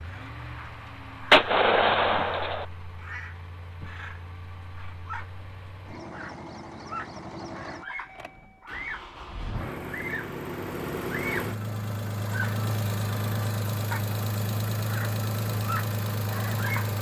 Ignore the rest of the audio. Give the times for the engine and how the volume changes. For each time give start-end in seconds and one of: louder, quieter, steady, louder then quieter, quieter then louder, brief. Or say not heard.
0.0-16.9 louder.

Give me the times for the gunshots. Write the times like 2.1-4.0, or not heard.
1.3-2.6.